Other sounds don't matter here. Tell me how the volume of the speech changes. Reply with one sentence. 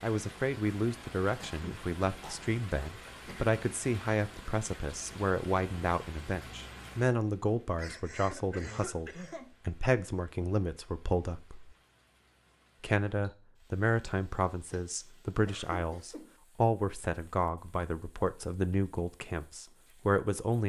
The volume of the speech stays about the same.